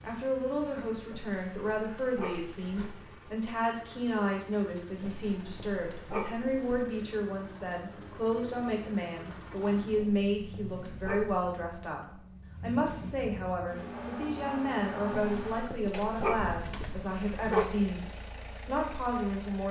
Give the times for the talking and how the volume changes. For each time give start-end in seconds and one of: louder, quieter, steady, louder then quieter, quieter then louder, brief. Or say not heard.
0.0-18.1 steady
18.6-19.6 brief.